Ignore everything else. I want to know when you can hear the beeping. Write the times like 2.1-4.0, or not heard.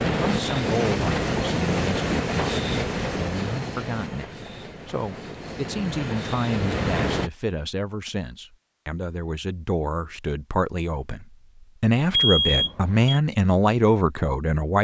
12.1-13.2.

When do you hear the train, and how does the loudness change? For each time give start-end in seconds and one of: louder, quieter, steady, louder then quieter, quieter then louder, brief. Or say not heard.
0.0-7.3 quieter then louder.